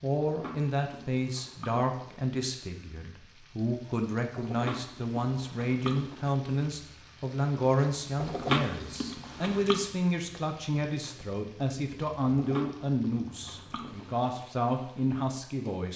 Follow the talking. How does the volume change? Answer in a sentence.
The volume of the talking stays about the same.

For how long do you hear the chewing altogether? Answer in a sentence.
The chewing can be heard for 7 seconds in total.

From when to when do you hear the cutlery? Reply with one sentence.
The cutlery can't be heard in this clip.